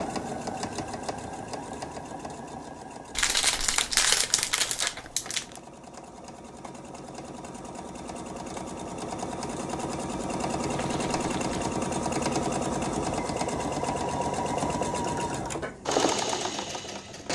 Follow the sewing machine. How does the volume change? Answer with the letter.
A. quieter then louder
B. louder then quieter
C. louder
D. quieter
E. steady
A.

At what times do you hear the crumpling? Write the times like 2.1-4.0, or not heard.
3.1-5.6, 10.7-11.7.